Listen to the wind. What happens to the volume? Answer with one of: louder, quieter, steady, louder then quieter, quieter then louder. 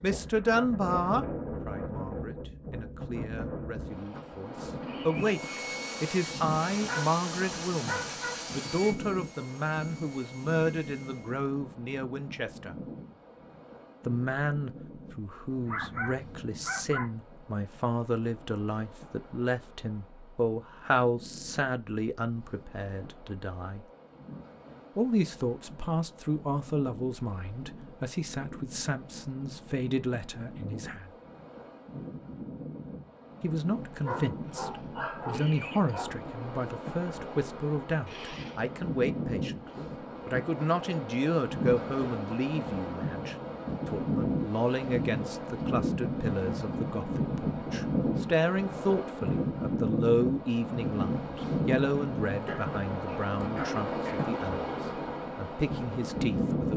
quieter then louder.